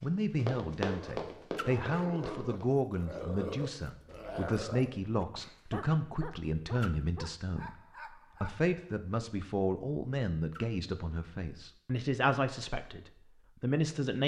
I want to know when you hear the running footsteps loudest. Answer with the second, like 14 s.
1 s.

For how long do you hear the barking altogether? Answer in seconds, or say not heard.
8 s.